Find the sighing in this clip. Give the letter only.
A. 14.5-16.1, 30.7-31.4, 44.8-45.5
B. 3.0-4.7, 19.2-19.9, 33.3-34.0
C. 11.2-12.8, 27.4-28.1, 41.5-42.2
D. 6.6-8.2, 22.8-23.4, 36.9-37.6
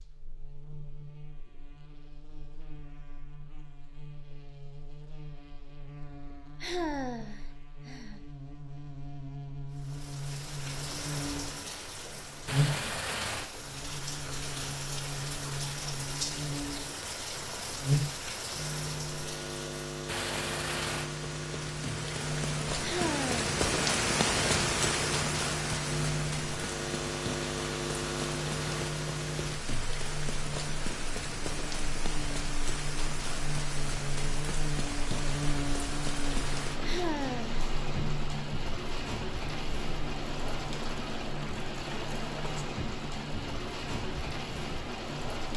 D.